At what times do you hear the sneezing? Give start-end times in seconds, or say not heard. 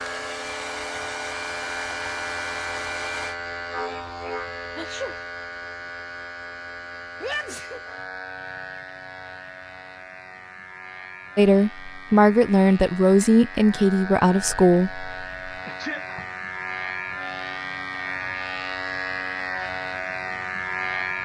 4.8-5.2, 7.2-7.8, 15.7-16.2.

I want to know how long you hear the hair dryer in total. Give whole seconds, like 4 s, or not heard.
3 s.